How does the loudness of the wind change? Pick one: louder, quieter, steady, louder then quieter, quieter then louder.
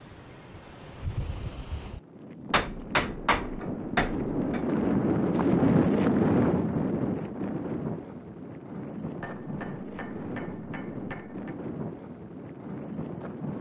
louder then quieter.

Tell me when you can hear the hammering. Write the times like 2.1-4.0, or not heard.
2.5-4.6, 9.2-11.6.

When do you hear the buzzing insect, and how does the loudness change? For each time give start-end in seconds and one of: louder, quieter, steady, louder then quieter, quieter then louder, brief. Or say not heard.
not heard.